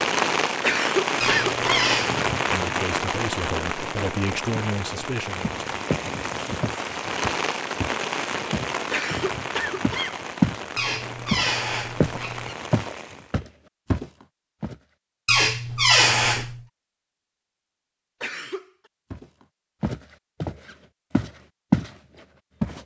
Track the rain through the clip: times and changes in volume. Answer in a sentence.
You can hear the rain from 0.0 to 13.3 s, getting quieter.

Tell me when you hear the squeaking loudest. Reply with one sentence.
The loudest moment of the squeaking is at 16 seconds.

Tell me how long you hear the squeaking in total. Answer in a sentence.
You can hear the squeaking for 4 seconds altogether.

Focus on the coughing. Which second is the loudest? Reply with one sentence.
The volume of the coughing peaks at 1 second.